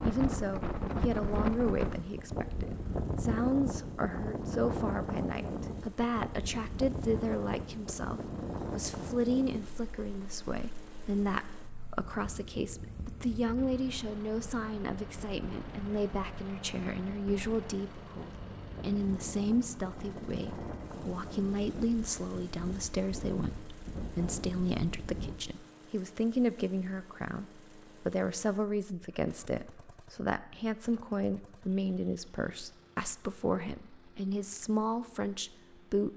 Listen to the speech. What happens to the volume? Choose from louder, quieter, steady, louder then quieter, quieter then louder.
steady.